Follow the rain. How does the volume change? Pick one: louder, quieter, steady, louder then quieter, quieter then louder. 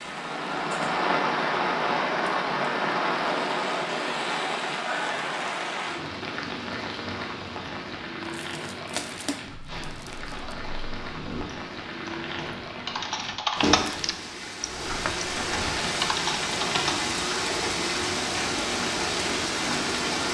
quieter then louder.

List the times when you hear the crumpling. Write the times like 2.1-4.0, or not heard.
8.2-10.6.